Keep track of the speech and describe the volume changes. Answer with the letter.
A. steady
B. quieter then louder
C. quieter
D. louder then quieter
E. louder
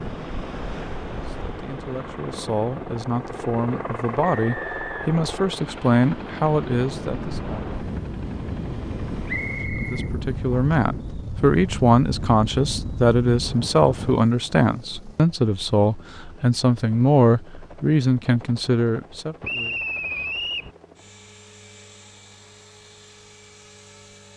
E.